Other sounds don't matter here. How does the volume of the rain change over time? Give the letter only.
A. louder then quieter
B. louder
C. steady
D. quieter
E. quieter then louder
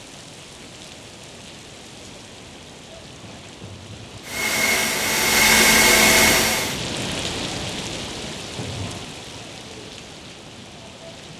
A.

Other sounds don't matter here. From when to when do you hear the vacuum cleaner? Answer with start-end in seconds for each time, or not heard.
4.2-6.8.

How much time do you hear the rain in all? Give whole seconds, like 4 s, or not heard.
11 s.